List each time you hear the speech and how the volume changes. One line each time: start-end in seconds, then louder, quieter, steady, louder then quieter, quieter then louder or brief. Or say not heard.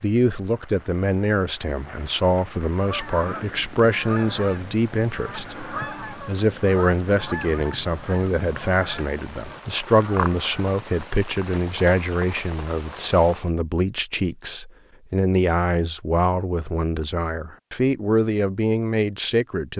0.0-19.7 steady.